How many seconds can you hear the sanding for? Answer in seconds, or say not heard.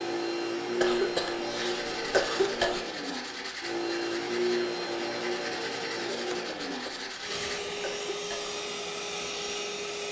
6 s.